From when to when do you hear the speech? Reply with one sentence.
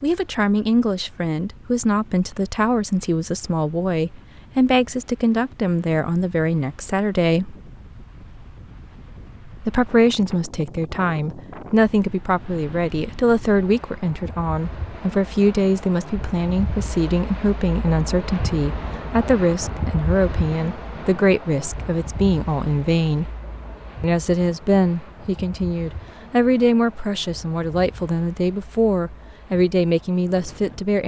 The speech can be heard from 0.0 to 7.5 s, from 9.6 to 23.3 s and from 24.0 to 31.0 s.